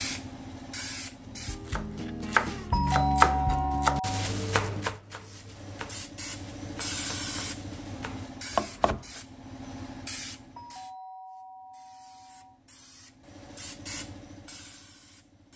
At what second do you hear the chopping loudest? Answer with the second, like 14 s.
3 s.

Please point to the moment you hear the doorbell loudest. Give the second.
3 s.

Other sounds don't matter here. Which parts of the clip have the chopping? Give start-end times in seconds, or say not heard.
1.2-9.2.